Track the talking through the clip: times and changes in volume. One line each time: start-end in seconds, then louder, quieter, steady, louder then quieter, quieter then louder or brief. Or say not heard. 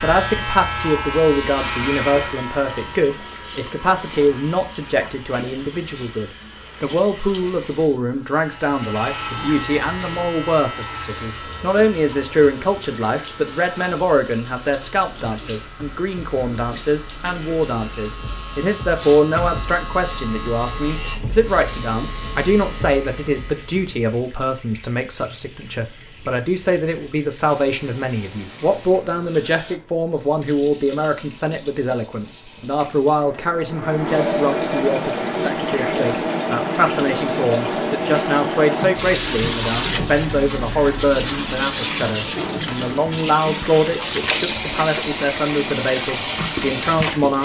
0.0-47.4 steady.